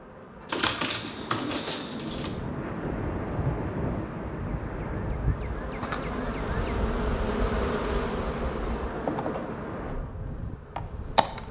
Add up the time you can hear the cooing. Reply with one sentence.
The cooing can be heard for 2 seconds in total.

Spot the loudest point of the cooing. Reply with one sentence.
The loudest moment of the cooing is at 1 second.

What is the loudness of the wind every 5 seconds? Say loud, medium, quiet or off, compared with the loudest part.
loud, medium, medium.